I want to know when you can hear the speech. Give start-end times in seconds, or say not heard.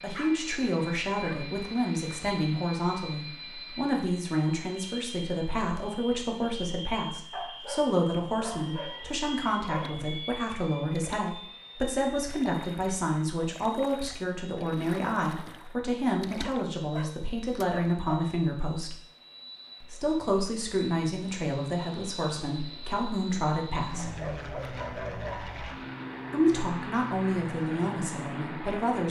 0.0-18.9, 19.8-24.1, 26.3-29.0.